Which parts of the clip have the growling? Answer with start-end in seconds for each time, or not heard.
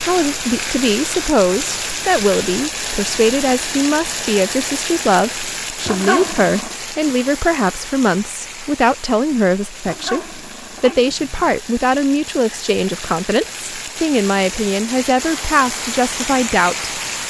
5.8-6.8, 9.8-11.5.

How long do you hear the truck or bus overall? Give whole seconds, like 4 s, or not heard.
not heard.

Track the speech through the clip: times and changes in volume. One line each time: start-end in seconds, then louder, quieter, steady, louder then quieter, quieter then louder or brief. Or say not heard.
0.0-16.9 steady.